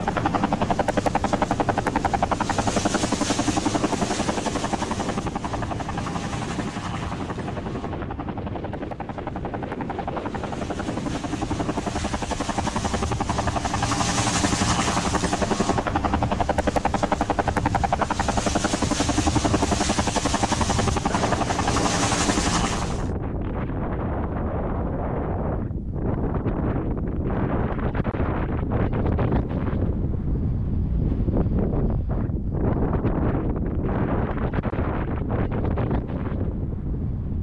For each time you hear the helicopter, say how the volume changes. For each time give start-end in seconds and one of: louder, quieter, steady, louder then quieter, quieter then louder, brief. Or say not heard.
0.0-23.1 quieter then louder.